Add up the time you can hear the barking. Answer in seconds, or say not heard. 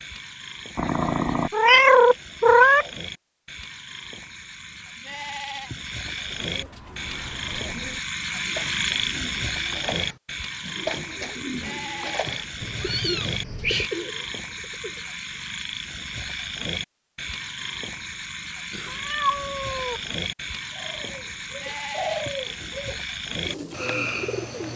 not heard.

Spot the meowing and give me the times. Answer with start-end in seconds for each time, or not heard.
0.8-2.9, 12.6-13.9, 18.7-20.0.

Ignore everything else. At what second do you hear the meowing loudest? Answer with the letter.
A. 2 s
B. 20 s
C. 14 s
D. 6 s
A.